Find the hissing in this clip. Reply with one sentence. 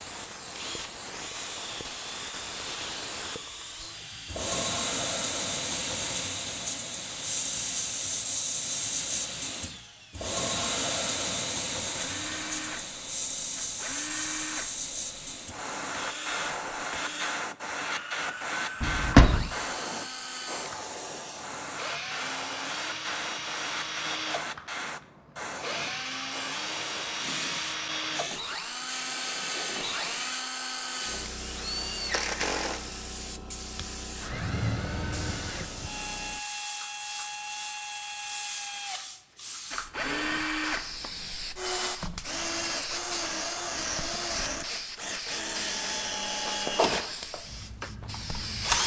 The hissing can be heard from 0.0 to 48.8 s.